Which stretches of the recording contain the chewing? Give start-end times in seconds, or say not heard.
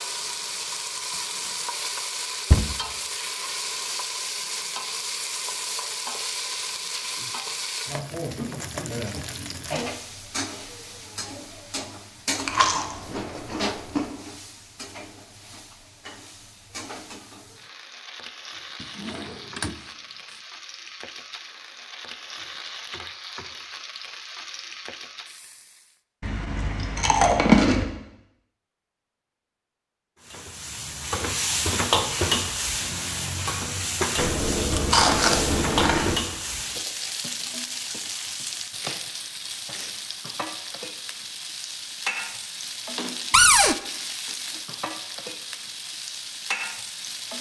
12.3-14.1, 26.2-27.9, 34.1-36.2.